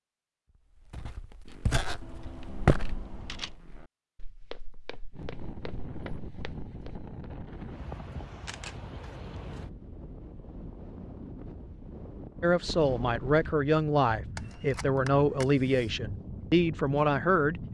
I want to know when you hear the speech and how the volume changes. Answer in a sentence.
You can hear the speech from 12.4 to 17.6 s, at a steady volume.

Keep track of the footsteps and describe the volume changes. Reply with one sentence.
The volume of the footsteps goes up, then down.